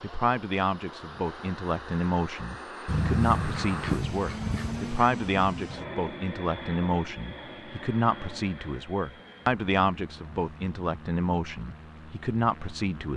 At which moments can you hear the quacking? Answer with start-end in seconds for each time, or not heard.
2.9-4.8.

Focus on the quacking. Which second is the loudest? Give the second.
3 s.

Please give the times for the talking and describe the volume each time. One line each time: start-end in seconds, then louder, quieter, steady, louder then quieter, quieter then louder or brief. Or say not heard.
0.0-13.1 steady.